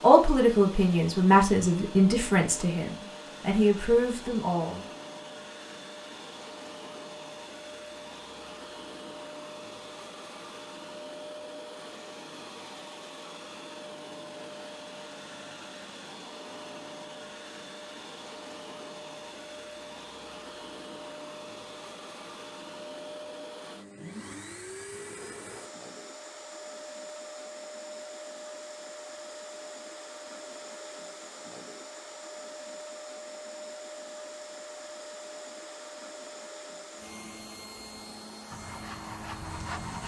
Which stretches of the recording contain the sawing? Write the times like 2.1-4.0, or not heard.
38.5-40.0.